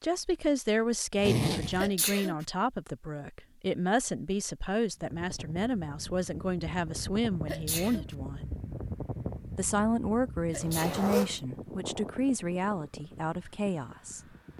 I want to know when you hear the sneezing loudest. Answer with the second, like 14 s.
2 s.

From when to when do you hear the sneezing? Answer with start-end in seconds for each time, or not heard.
1.8-2.5, 7.5-8.2, 10.5-11.1.